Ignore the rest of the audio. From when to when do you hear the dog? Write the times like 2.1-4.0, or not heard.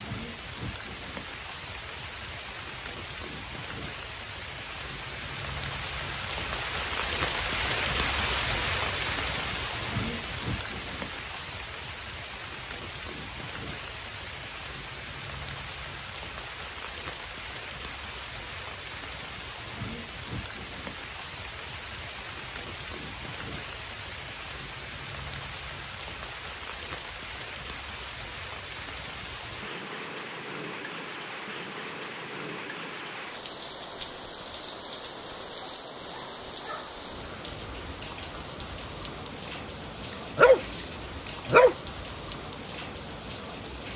40.1-41.8.